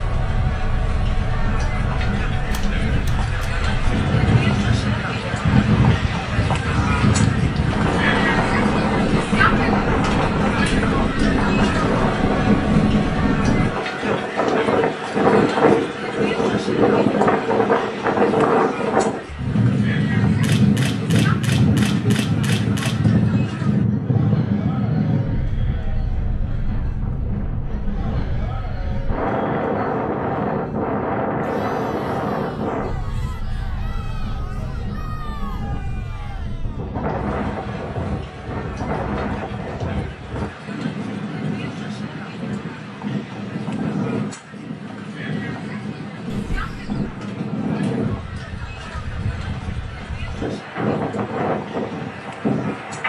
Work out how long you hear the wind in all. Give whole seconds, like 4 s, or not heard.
53 s.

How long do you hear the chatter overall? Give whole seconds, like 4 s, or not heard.
53 s.